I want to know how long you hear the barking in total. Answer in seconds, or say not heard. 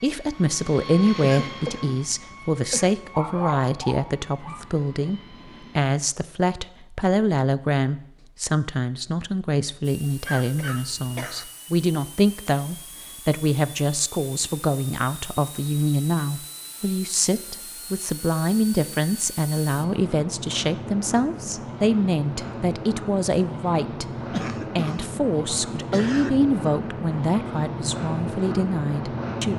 2 s.